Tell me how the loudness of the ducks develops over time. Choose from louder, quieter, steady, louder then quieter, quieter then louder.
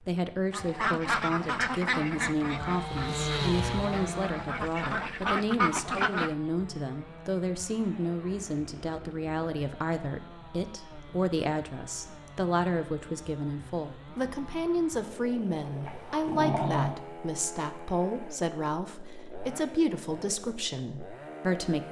quieter then louder.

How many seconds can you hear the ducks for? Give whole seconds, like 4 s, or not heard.
6 s.